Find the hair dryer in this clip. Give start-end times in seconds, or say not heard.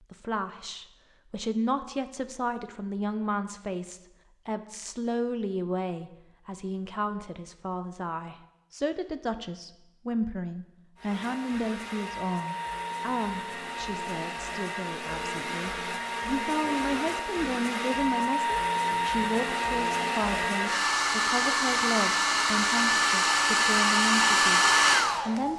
10.9-25.5.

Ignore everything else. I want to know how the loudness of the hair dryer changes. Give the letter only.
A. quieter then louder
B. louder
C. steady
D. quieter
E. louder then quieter
B.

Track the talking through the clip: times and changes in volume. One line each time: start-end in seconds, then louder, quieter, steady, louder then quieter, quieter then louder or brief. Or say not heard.
0.1-25.5 steady.